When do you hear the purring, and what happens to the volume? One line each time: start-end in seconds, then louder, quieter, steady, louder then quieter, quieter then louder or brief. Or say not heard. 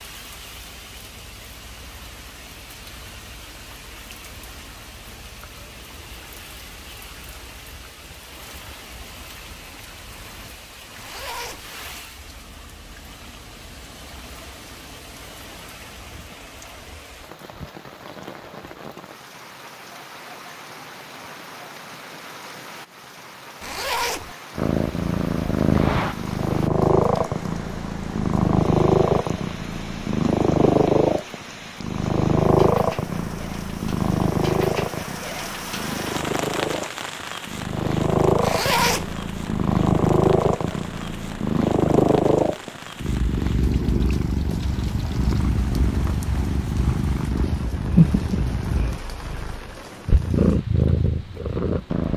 24.6-52.1 steady.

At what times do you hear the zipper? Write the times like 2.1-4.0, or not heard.
10.9-11.7, 23.6-24.4, 38.4-39.1.